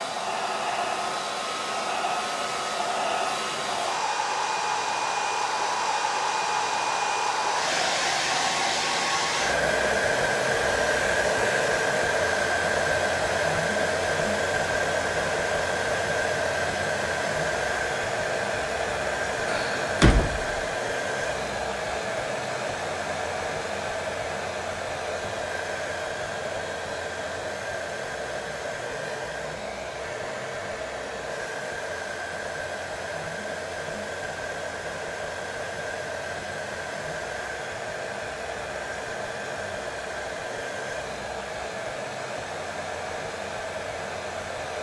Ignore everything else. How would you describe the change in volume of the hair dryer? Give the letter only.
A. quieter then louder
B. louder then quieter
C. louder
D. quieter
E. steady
D.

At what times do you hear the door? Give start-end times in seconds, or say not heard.
19.4-20.6.